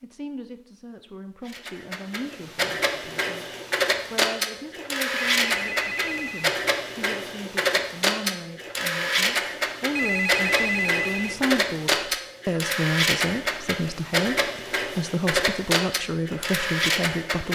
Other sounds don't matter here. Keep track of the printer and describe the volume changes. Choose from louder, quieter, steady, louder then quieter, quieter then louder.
steady.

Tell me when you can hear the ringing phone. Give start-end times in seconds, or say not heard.
5.2-6.5, 9.9-11.4.